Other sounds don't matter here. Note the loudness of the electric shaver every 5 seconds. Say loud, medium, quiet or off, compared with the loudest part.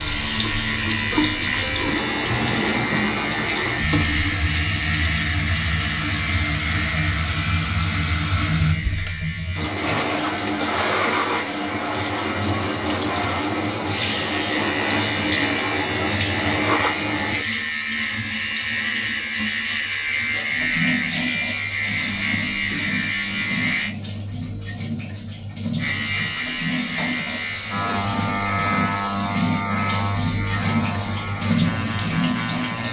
loud, medium, medium, loud, loud, loud, medium.